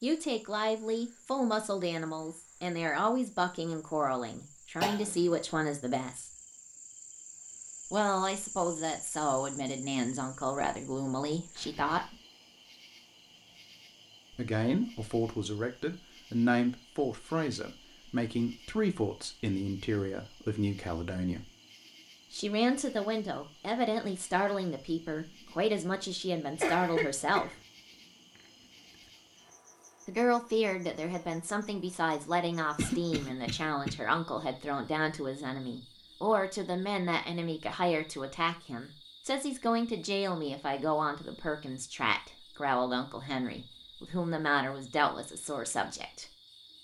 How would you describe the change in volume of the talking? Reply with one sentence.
The loudness of the talking stays about the same.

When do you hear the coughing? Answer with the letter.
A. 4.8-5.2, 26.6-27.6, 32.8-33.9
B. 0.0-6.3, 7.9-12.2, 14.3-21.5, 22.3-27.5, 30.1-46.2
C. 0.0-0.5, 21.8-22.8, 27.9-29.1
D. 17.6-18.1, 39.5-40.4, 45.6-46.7
A.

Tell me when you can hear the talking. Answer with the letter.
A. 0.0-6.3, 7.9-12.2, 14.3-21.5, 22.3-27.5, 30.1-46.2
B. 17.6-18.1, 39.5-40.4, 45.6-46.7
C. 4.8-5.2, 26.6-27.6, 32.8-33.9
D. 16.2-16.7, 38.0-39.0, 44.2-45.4
A.